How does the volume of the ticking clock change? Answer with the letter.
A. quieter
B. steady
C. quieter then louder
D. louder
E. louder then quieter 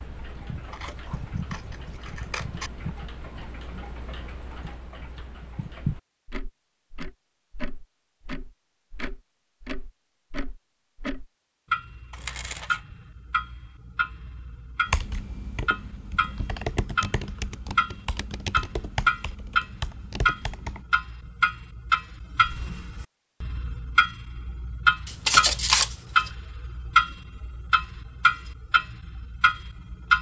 D.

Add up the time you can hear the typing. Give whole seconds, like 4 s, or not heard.
6 s.